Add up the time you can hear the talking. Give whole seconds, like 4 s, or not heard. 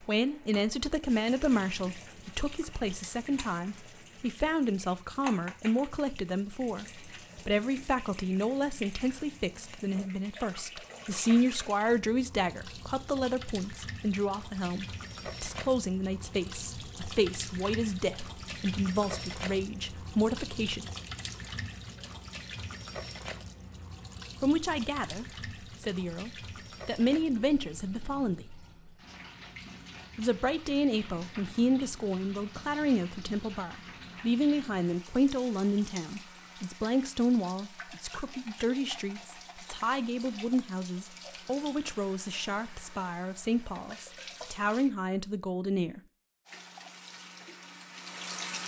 41 s.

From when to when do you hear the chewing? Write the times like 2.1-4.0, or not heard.
not heard.